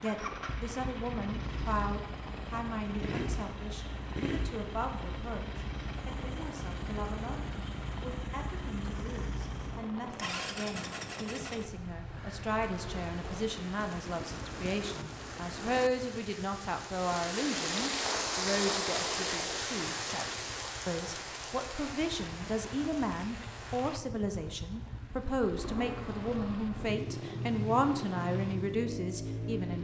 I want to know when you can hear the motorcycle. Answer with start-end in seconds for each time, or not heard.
0.0-29.7.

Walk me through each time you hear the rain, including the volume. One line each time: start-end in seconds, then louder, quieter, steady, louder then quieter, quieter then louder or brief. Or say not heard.
0.0-29.7 louder then quieter.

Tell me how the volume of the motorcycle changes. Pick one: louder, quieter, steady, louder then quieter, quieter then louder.
quieter then louder.